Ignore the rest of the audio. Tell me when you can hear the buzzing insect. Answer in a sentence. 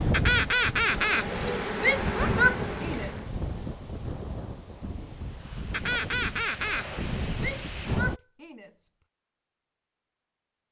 You can hear the buzzing insect from 0.0 to 3.4 s.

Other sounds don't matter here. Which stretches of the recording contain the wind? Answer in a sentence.
You can hear the wind from 0.0 to 8.2 s.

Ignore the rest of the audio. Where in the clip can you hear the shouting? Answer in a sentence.
You can hear the shouting from 1.8 to 3.2 s and from 7.3 to 8.8 s.